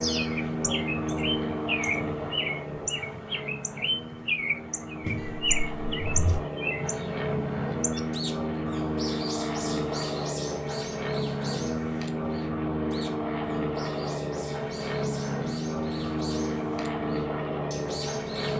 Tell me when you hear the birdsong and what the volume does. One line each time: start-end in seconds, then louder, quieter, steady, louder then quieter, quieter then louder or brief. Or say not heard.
0.0-18.5 quieter.